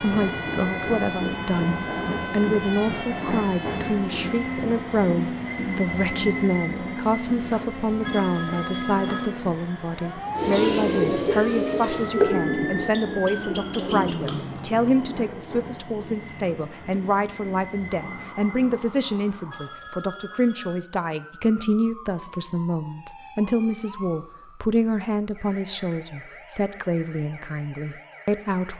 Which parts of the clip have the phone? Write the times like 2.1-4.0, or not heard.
8.1-9.3, 19.5-20.9.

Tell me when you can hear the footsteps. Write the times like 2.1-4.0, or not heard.
not heard.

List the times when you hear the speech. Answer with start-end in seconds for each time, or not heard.
0.0-28.7.